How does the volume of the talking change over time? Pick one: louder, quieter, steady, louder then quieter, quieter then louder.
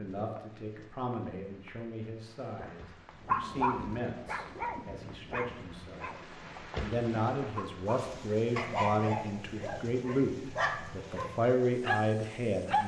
louder.